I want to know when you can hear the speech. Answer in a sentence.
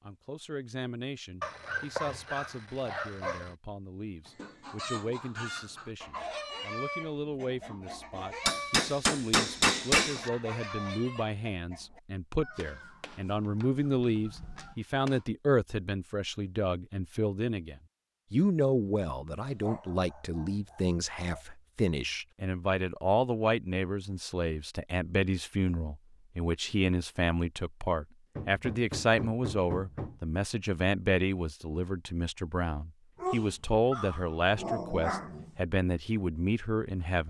You can hear the speech from 0.0 to 37.2 s.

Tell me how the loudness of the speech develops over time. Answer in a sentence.
The volume of the speech goes up.